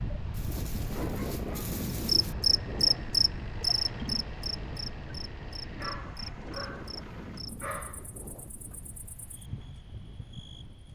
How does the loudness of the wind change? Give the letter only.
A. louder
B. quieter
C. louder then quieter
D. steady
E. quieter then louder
B.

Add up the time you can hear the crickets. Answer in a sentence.
The crickets can be heard for 9 seconds in total.